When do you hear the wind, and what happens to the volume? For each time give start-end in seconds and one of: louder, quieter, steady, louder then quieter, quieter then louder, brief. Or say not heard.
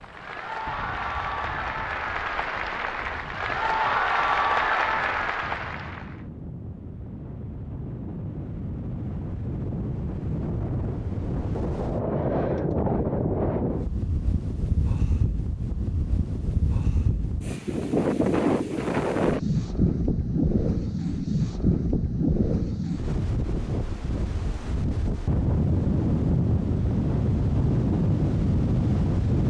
0.0-29.4 louder.